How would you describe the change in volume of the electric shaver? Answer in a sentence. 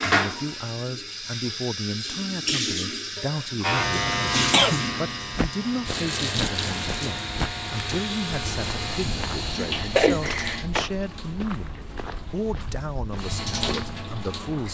The loudness of the electric shaver goes down.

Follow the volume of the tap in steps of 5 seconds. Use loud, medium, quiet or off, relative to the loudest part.
loud, loud, medium.